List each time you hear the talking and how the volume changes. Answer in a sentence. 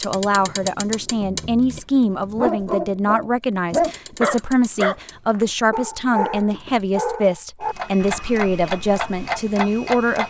You can hear the talking from 0.0 to 10.2 s, at a steady volume.